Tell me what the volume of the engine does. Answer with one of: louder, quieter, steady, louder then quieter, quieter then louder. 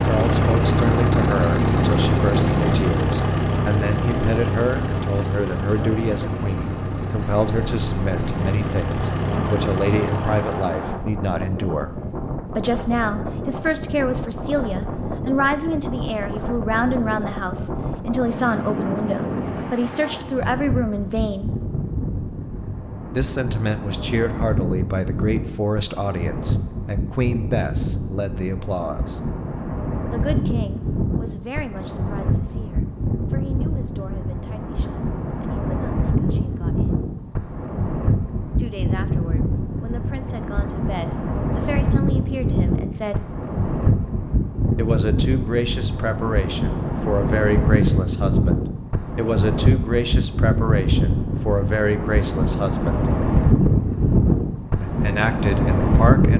quieter.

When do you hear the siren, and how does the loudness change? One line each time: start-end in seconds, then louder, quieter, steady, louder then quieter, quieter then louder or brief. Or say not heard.
not heard.